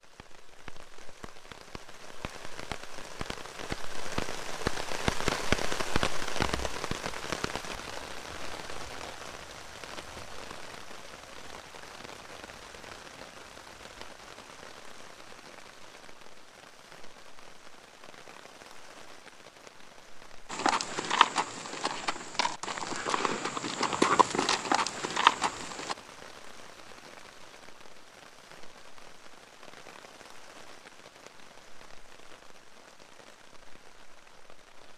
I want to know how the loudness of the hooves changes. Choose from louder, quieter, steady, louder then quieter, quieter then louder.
quieter then louder.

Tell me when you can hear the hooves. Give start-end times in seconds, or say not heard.
20.5-25.9.